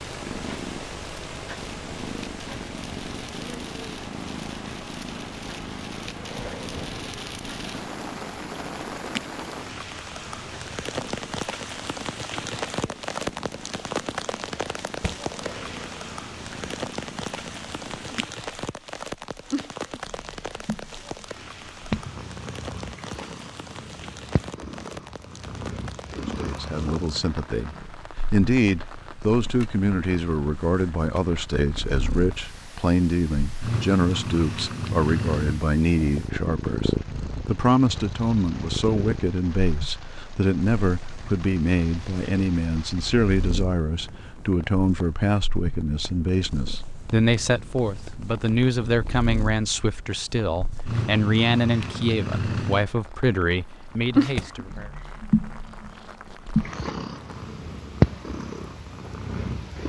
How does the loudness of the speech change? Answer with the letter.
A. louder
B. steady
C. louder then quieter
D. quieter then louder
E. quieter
B.